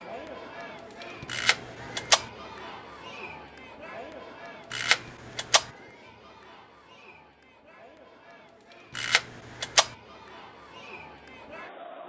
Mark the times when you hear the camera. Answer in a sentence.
You can hear the camera from 1.2 to 2.2 s, from 4.7 to 5.7 s and from 8.9 to 9.9 s.